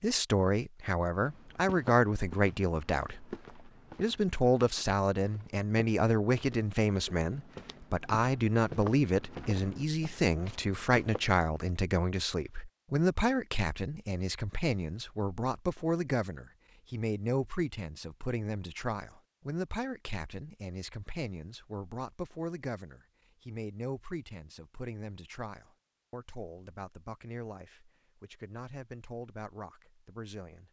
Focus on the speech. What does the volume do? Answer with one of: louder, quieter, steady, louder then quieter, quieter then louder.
quieter.